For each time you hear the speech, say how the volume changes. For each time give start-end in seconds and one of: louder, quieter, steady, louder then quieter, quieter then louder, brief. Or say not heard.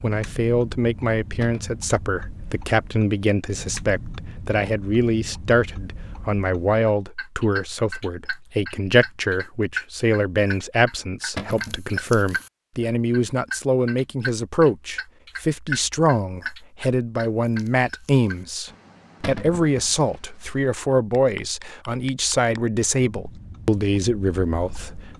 0.0-25.1 steady.